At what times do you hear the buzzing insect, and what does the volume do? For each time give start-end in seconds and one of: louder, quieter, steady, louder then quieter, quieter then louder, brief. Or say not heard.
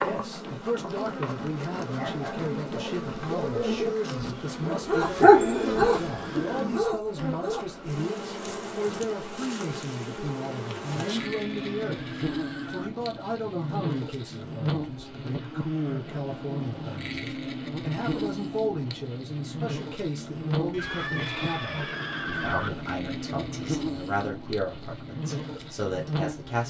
0.0-26.6 steady.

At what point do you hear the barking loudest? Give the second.
5 s.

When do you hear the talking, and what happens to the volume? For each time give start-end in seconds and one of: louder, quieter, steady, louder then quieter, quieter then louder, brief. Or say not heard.
0.0-26.6 steady.